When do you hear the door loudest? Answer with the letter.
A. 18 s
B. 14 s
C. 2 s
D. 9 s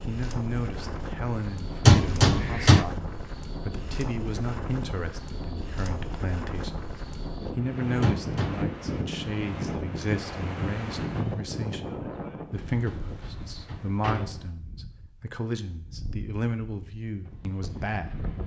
C.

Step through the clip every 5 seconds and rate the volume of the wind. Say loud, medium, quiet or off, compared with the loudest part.
loud, loud, loud, medium.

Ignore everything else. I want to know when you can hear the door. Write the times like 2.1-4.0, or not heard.
1.9-2.9, 8.0-8.8, 12.8-14.5.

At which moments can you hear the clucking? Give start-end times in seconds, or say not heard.
not heard.